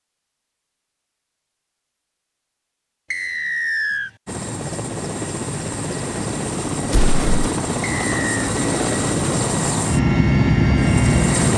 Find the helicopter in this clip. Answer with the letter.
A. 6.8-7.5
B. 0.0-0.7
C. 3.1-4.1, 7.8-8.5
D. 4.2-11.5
D.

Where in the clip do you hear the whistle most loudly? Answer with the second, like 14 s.
4 s.